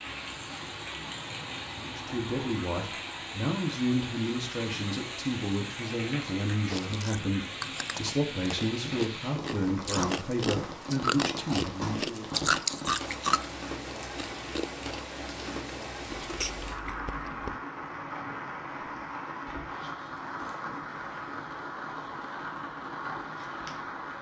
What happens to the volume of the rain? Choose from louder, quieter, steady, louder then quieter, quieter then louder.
steady.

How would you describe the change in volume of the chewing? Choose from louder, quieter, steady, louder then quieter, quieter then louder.
louder then quieter.